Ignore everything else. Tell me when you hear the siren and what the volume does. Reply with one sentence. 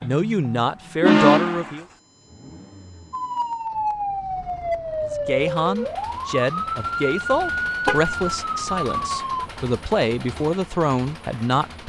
The siren can be heard from 3.1 to 9.5 s, at a steady volume.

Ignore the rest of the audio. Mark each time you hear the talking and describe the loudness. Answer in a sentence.
The talking can be heard briefly from 0.0 to 1.9 s; and from 5.1 to 11.8 s, at a steady volume.